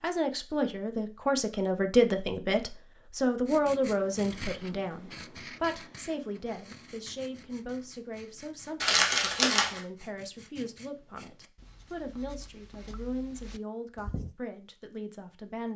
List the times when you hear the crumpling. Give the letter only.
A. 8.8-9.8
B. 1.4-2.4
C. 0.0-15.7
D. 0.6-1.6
A.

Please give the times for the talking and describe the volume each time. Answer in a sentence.
You can hear the talking from 0.0 to 15.7 s, getting quieter.